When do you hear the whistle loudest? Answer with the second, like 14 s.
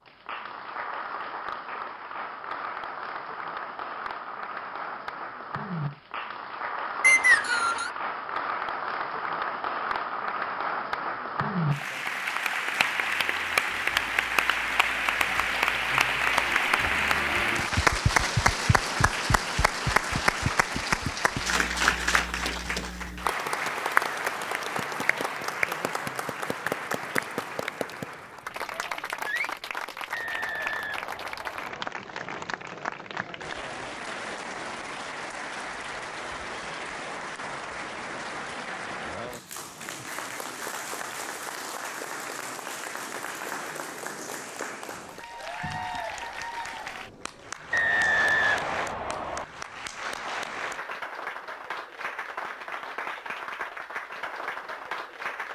7 s.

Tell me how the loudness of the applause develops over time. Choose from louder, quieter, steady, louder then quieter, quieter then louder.
louder then quieter.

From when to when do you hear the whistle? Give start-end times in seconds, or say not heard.
7.0-7.9, 30.1-31.9, 47.7-49.5.